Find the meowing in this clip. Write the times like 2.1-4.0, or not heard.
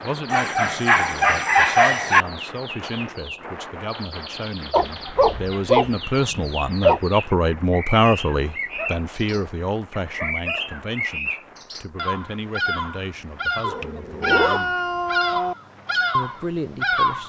13.6-15.6.